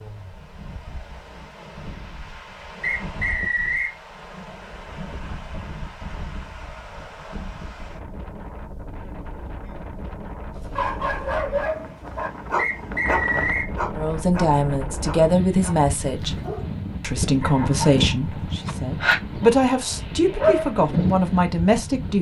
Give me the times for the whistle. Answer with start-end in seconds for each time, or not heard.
2.8-4.0, 12.6-13.7.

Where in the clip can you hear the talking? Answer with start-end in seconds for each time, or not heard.
13.9-16.4, 17.0-22.1.